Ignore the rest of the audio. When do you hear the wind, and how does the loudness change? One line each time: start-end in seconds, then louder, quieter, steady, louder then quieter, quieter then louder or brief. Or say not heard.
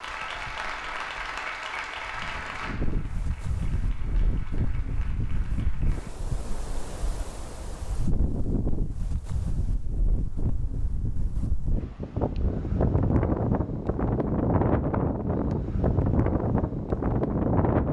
0.0-17.8 louder.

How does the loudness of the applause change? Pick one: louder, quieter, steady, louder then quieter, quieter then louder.
quieter.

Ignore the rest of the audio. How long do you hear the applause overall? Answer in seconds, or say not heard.
6 s.